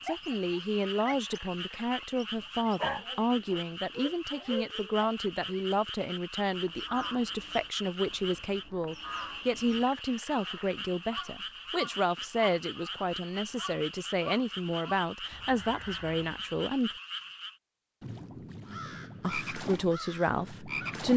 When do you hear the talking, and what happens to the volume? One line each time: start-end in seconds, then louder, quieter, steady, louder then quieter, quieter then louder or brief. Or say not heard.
0.1-16.9 steady
19.2-21.1 brief.